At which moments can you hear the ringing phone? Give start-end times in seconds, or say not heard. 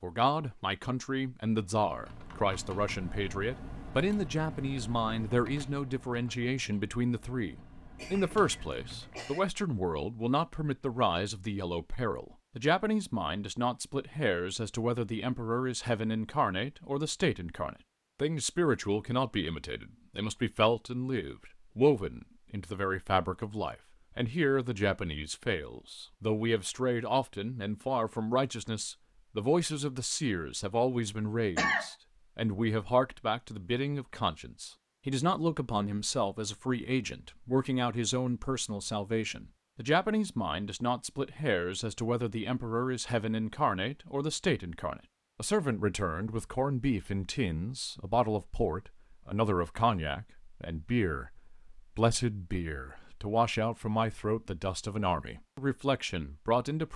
not heard.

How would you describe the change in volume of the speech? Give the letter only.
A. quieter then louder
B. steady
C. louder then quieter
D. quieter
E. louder
B.